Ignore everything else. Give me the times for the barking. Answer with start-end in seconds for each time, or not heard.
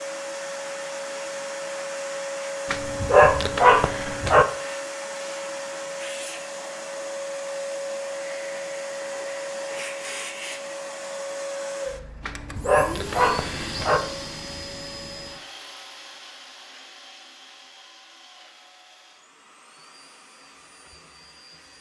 2.7-4.5, 12.2-14.0.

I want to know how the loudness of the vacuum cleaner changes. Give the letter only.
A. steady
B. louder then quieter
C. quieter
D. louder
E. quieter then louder
C.